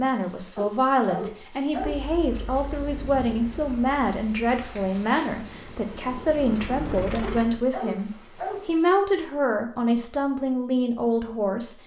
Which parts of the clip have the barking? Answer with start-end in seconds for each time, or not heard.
0.6-2.0, 7.2-8.7.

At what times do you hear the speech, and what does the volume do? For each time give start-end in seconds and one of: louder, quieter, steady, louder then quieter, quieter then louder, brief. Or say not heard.
0.0-11.8 steady.